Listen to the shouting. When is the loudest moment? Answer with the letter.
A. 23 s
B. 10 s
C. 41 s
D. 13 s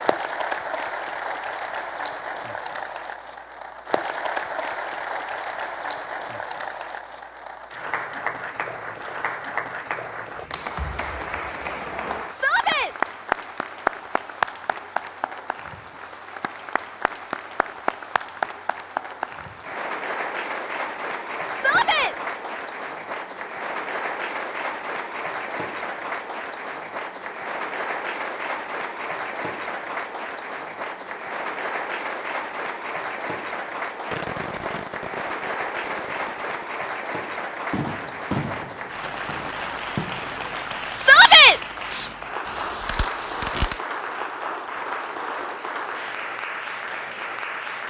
C.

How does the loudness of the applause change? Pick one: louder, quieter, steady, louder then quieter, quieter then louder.
steady.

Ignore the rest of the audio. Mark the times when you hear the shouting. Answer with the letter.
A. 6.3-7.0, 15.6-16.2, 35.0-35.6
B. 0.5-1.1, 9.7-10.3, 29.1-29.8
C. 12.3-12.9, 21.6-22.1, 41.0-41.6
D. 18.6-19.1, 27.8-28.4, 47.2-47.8
C.